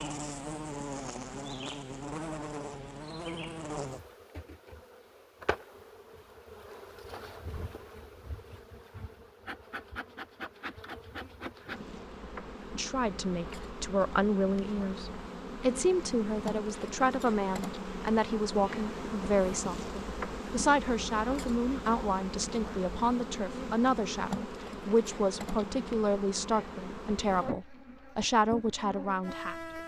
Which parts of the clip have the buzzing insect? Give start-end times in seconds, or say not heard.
0.0-29.8.